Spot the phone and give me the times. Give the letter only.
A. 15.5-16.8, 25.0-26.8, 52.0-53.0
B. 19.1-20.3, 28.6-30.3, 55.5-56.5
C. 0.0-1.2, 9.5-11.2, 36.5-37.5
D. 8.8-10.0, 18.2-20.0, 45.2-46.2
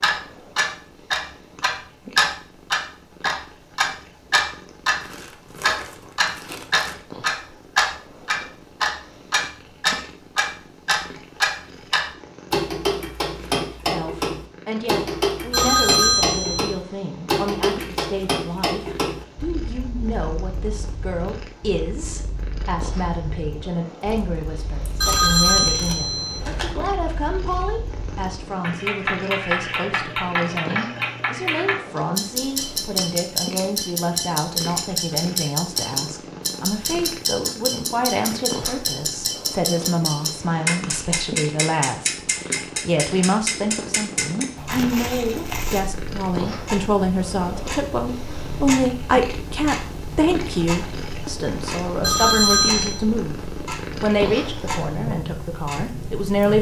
A.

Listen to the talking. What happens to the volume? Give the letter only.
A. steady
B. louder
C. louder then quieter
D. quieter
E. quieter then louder
B.